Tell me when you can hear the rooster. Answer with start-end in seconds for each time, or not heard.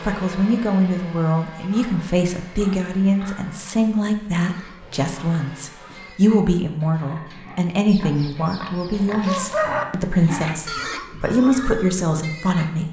7.8-9.8.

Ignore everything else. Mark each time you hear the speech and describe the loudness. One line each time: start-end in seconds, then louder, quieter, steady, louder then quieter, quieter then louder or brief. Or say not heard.
0.0-12.8 steady.